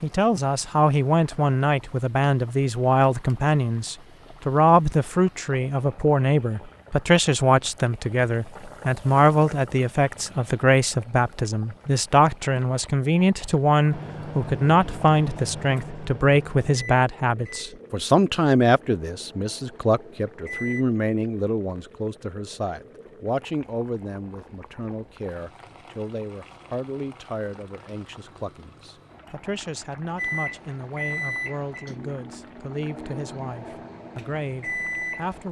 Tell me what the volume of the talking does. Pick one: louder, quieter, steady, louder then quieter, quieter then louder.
quieter.